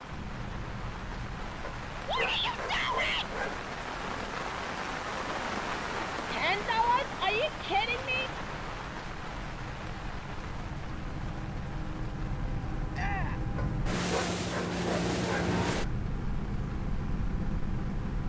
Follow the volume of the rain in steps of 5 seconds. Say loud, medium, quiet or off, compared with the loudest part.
loud, loud, medium, quiet.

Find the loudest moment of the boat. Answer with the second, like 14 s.
15 s.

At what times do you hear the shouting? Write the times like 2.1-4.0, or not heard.
2.0-3.3, 6.3-8.3, 12.9-13.4.